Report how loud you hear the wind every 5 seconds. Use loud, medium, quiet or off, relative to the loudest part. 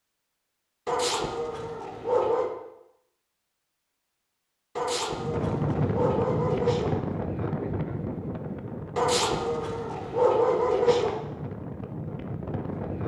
off, loud, medium.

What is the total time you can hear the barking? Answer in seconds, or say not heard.
6 s.